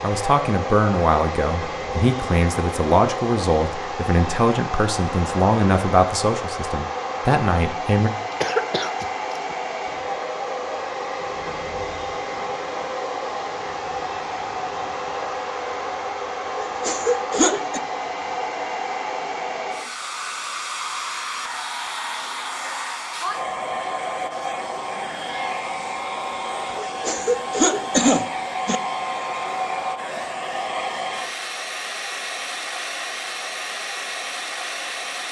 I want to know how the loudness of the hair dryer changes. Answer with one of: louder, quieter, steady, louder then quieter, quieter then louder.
steady.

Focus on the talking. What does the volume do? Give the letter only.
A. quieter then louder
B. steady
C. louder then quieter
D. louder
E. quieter
B.